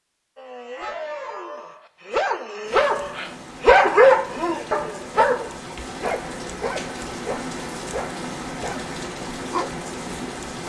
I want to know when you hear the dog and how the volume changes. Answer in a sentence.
You can hear the dog from 0.3 to 9.7 s, getting louder then quieter.